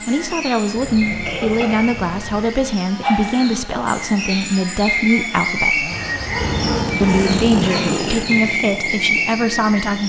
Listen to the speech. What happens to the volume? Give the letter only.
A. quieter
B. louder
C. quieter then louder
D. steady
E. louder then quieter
D.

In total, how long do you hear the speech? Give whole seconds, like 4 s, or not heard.
9 s.